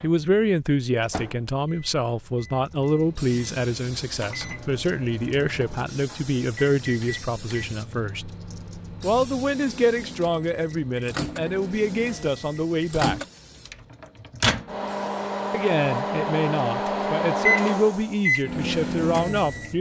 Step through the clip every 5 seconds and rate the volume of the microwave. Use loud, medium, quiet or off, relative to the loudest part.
quiet, quiet, medium, loud.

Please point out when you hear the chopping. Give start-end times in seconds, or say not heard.
not heard.